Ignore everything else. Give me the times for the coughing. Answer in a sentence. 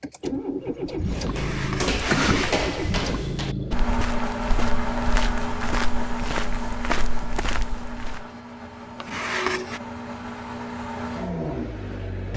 You can hear the coughing from 1.2 to 2.6 s and from 9.0 to 9.8 s.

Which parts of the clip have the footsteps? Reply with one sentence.
You can hear the footsteps from 1.1 to 8.2 s.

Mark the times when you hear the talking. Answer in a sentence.
You can't hear the talking here.